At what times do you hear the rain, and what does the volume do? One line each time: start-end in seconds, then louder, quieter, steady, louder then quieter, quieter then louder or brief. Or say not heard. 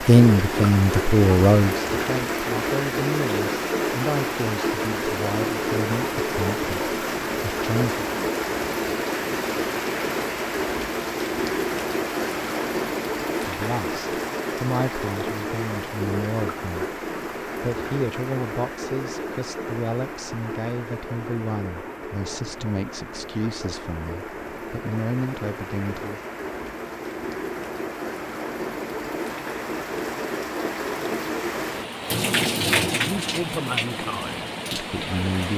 0.0-35.5 quieter then louder.